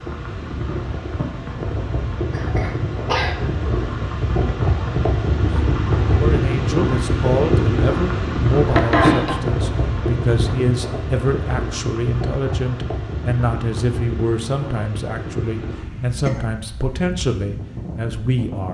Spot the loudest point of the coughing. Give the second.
9 s.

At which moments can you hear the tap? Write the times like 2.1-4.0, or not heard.
not heard.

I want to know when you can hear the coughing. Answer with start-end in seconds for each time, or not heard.
2.3-3.4, 8.7-9.3, 15.7-16.4.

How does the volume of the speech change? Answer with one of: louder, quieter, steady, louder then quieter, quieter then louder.
steady.